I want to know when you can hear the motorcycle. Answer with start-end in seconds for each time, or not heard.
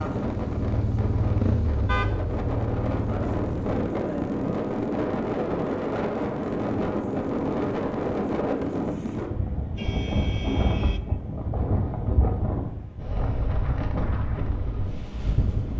0.1-3.9.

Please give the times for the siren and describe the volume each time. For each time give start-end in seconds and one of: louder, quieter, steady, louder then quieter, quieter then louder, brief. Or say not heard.
not heard.